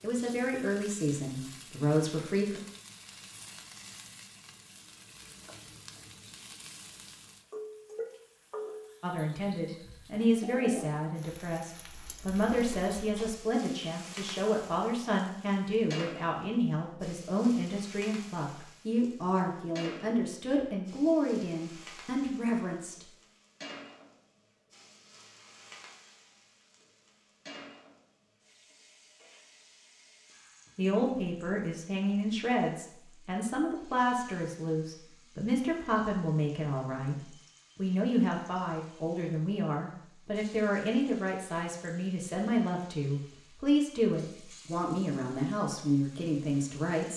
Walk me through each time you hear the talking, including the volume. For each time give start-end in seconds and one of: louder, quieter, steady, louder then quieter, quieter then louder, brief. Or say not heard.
0.0-2.6 brief
9.0-23.1 steady
30.8-47.1 steady.